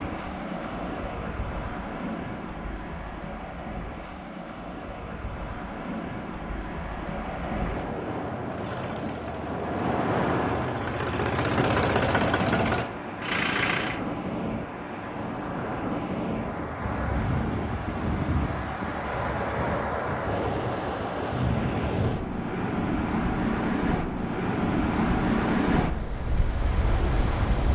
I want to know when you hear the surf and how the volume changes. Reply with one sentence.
You can hear the surf from 0.0 to 27.7 s, getting louder.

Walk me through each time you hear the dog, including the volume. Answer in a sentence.
The dog can't be heard in this clip.